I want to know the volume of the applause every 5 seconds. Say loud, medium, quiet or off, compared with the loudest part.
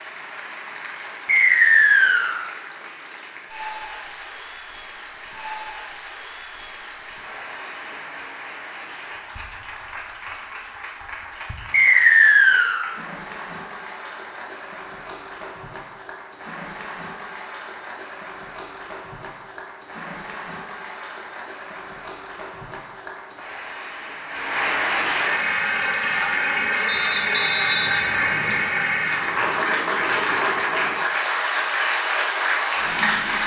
quiet, quiet, quiet, quiet, medium, loud, loud.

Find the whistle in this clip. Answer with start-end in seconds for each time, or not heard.
1.2-2.4, 11.7-12.8, 26.9-28.7.